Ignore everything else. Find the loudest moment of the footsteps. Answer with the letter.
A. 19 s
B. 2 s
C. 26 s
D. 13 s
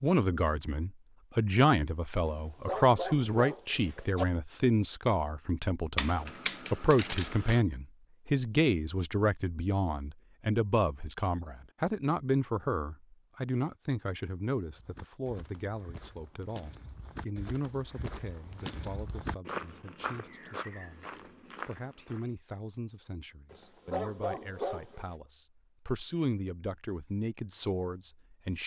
A.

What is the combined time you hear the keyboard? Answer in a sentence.
The keyboard can be heard for 2 seconds in total.